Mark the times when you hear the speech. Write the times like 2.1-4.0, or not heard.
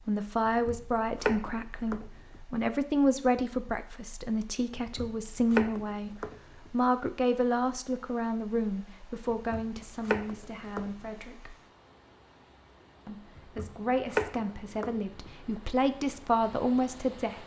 0.1-11.6, 13.1-17.4.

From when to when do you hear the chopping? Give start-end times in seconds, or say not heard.
0.5-2.4, 4.8-6.7, 9.3-10.9, 13.3-15.6.